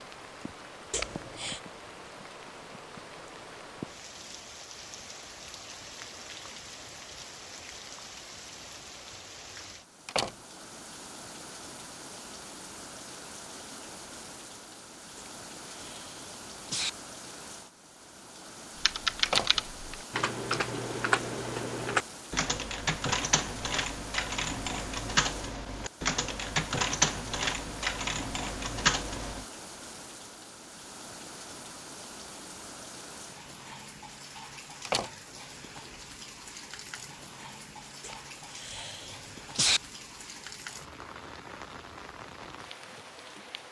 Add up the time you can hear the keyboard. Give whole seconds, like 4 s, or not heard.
11 s.